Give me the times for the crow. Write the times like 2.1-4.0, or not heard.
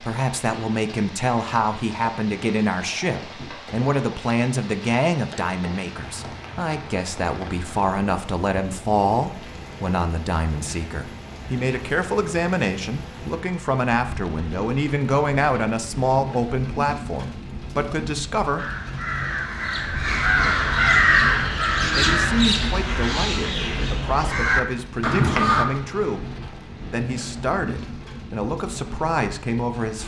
18.6-25.6.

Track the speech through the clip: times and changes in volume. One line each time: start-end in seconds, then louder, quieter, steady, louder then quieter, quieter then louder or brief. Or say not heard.
0.0-18.6 steady
21.8-30.0 steady.